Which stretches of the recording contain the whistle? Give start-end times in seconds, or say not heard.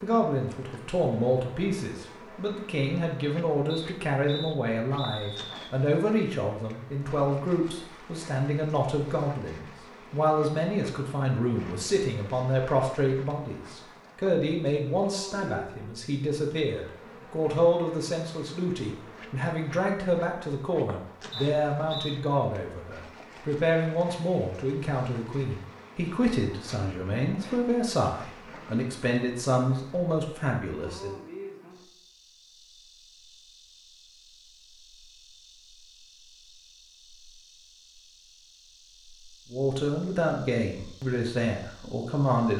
3.6-5.7, 21.3-22.1.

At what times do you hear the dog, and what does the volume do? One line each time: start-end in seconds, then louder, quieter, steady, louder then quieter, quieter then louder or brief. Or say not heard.
not heard.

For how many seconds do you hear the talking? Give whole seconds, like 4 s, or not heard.
34 s.